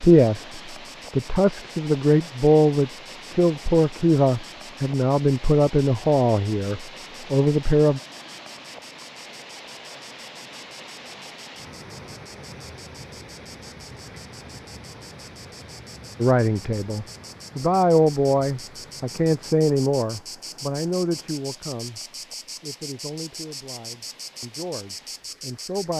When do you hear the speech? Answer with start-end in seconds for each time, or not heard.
0.0-8.0, 16.2-22.0, 22.6-25.9.